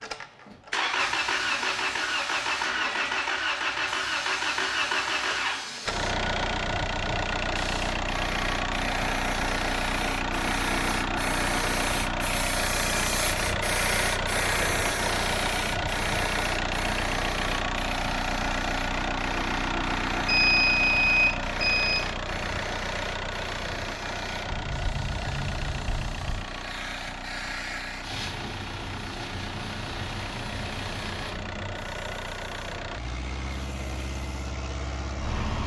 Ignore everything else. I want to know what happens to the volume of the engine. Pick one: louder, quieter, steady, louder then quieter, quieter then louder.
quieter.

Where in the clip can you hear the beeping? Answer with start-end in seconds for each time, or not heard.
20.2-22.1.